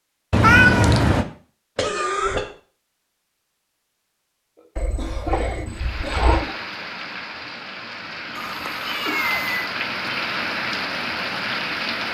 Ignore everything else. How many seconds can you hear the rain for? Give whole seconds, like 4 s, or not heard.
6 s.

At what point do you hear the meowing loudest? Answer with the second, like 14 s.
1 s.